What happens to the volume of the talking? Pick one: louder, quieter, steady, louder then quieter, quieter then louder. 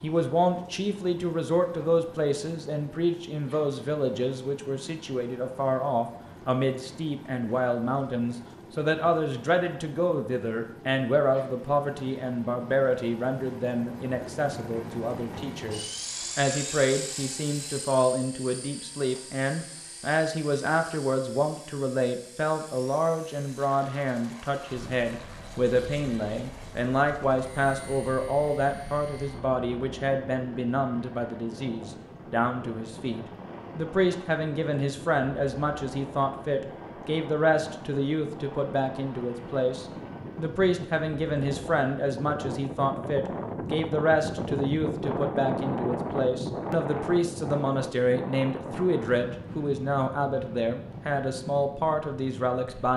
steady.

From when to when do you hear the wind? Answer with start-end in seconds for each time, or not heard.
24.7-52.9.